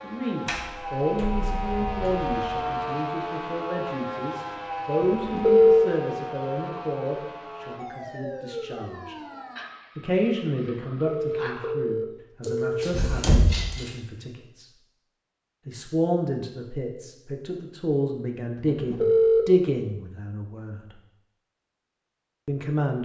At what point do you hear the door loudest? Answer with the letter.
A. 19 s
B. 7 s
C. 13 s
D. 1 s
C.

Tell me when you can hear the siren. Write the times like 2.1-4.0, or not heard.
0.0-11.8.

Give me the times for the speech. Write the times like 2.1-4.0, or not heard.
0.0-9.2, 9.9-14.7, 15.7-20.9, 22.4-23.0.